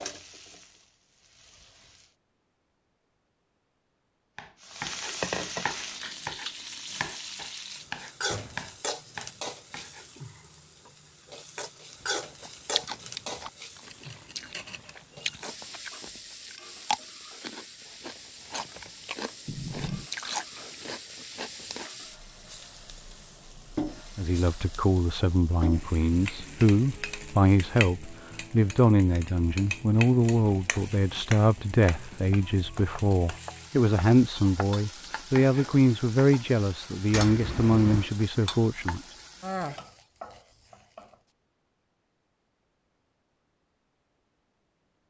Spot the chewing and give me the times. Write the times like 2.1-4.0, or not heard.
12.0-21.9.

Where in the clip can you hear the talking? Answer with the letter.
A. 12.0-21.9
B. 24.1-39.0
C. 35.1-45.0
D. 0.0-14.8
B.